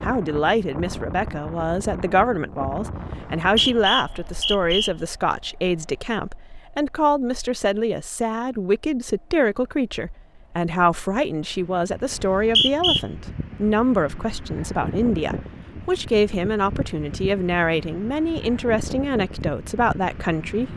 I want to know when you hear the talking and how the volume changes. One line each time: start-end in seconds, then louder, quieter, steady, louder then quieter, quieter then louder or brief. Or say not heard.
0.0-20.7 steady.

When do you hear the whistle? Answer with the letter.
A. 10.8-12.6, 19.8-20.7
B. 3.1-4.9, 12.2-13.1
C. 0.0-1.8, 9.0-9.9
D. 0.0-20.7
B.